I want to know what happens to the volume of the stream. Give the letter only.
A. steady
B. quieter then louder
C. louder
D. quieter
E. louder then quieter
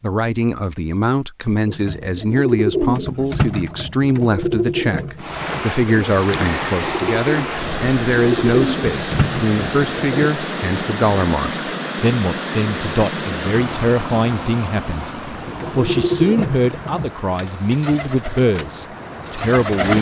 D.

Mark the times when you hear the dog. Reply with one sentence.
You can't hear the dog here.